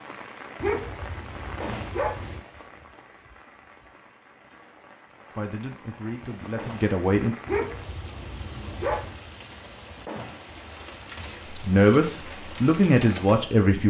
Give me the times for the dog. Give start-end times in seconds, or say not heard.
0.6-2.4, 7.5-9.2.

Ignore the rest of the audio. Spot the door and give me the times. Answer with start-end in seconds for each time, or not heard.
1.6-2.0, 6.5-7.0, 10.1-10.6.